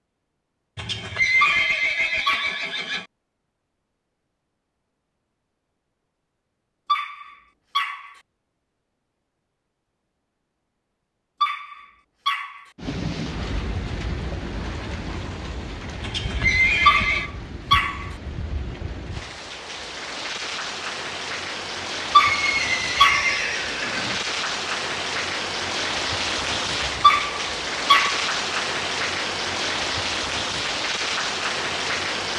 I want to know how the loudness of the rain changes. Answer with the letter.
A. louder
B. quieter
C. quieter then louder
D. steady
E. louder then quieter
A.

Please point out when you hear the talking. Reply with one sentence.
The talking can't be heard in this clip.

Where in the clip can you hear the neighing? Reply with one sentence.
You can hear the neighing from 0.8 to 3.0 s, from 16.0 to 17.3 s and from 22.1 to 24.2 s.